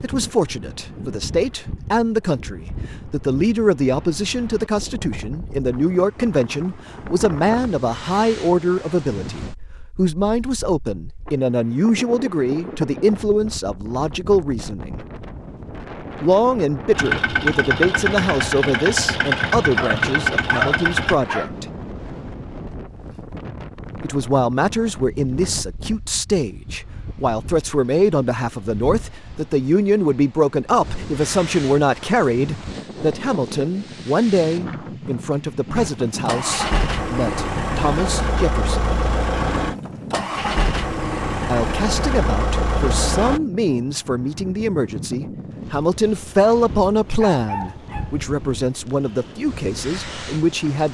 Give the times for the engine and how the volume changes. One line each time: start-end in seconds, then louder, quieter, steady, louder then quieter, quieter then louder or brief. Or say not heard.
16.9-21.1 steady
35.7-43.4 steady.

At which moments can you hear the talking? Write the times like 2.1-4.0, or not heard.
0.0-15.1, 16.2-21.6, 24.0-39.0, 41.5-50.8.